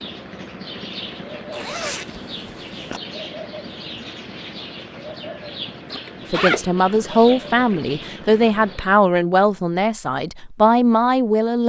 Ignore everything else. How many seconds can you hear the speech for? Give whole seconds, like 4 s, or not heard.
5 s.